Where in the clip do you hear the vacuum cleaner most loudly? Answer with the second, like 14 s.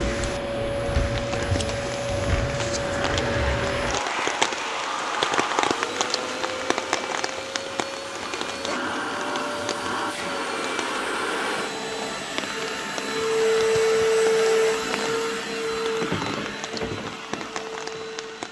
14 s.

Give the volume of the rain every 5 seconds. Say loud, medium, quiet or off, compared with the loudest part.
loud, loud, medium, medium.